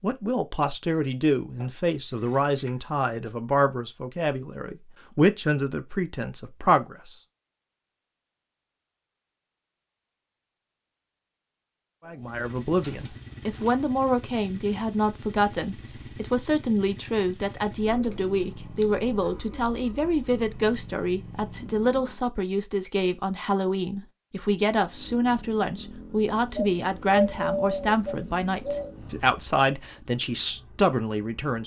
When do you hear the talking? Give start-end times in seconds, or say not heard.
0.0-7.1, 12.1-31.6.